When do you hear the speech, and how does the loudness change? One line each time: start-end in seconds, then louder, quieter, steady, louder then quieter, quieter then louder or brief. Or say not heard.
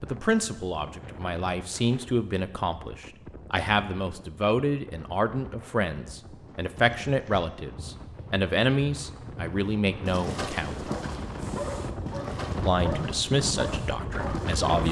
0.0-10.9 steady
12.6-14.8 brief.